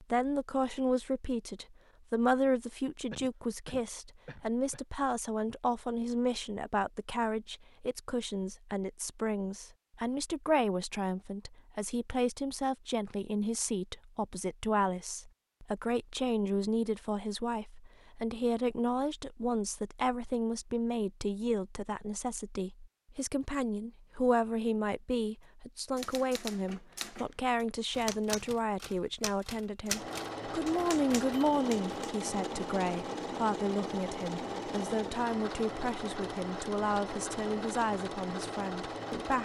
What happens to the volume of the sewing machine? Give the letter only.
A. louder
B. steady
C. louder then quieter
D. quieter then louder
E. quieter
B.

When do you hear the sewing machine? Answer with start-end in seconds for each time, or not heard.
29.9-39.3.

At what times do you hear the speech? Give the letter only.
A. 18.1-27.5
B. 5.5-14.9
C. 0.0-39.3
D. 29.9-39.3
C.